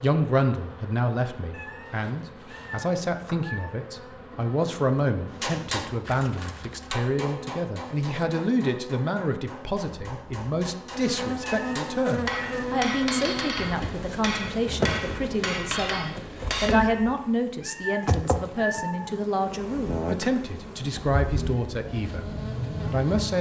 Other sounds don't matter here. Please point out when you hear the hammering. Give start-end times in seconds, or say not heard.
5.4-16.8.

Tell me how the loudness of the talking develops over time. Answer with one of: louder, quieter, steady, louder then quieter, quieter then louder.
steady.